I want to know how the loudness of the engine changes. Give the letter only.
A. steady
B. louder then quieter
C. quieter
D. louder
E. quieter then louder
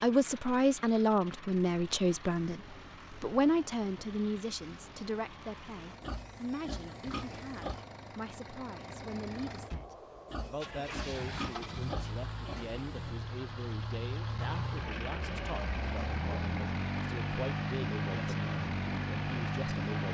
D.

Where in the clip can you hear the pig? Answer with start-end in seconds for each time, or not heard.
6.0-7.8, 10.2-13.2.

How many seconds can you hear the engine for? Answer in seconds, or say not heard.
20 s.